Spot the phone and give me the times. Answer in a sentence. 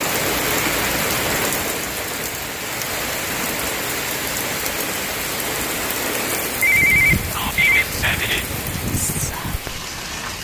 The phone can be heard from 6.6 to 7.8 s.